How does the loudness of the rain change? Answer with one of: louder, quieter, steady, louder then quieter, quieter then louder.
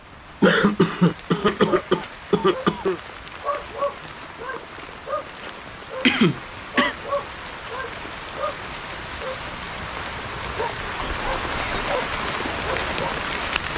louder.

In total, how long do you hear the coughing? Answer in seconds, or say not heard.
4 s.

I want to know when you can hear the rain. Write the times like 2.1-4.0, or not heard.
0.0-13.7.